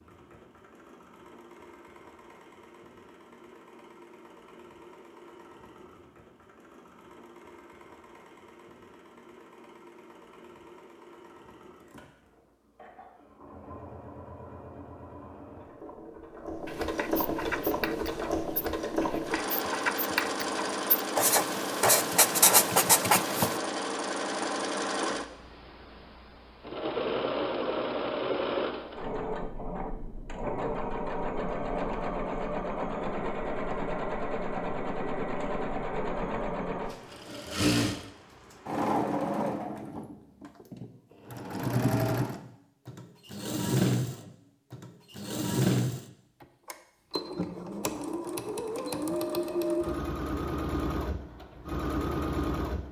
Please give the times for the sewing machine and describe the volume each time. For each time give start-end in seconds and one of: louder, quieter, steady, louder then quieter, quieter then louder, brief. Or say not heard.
0.0-52.8 louder.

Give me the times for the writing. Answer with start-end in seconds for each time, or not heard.
16.6-23.6.